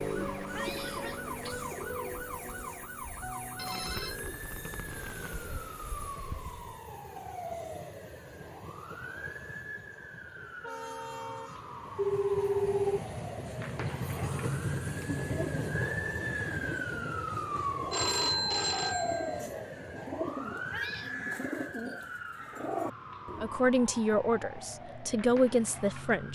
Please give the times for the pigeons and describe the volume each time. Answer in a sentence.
The pigeons can be heard from 0.0 to 6.8 s, getting quieter then louder; and from 15.2 to 23.7 s, getting louder.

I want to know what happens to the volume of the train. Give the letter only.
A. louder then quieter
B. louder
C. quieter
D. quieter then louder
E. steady
A.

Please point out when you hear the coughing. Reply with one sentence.
You can hear the coughing from 0.5 to 1.7 s and from 20.7 to 21.1 s.